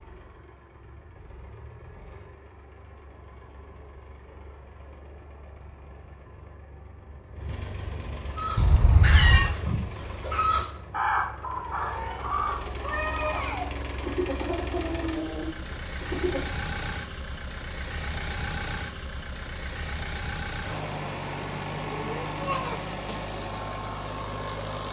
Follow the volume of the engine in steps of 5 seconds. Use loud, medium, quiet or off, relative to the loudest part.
quiet, medium, medium, loud, loud.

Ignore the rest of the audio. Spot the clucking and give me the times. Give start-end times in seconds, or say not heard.
8.3-16.4.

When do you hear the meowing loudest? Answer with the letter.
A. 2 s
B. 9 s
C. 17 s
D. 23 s
B.